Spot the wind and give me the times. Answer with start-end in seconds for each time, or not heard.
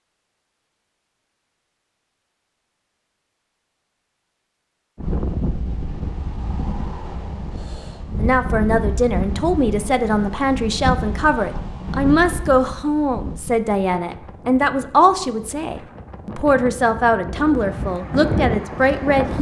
5.0-19.3.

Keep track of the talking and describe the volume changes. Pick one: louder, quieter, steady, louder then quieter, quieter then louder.
steady.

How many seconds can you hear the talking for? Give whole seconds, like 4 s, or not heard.
11 s.